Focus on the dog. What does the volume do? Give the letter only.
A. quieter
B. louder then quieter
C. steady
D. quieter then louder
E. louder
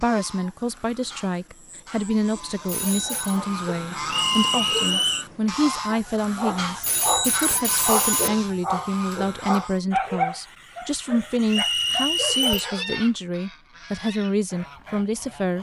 B.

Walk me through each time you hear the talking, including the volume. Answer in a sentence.
You can hear the talking from 0.0 to 15.5 s, at a steady volume.